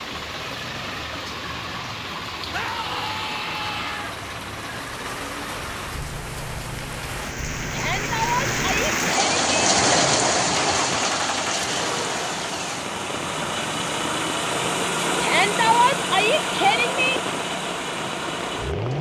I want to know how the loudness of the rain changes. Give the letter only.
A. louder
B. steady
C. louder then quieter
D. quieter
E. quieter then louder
C.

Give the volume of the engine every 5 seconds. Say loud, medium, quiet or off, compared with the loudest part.
medium, medium, loud, loud.